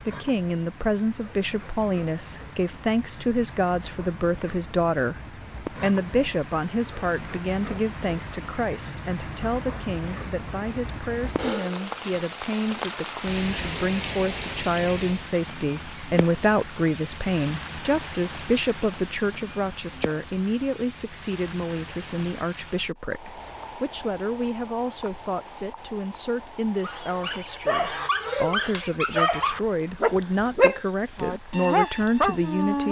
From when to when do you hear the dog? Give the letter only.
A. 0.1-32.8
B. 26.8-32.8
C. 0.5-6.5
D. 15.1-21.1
B.